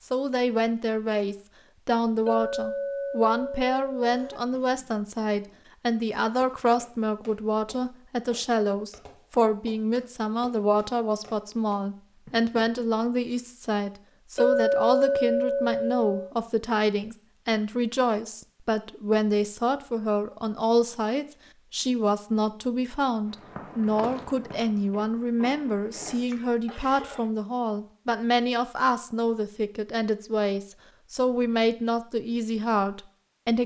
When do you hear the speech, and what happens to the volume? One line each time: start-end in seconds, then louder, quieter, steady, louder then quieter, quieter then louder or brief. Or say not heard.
0.0-33.6 steady.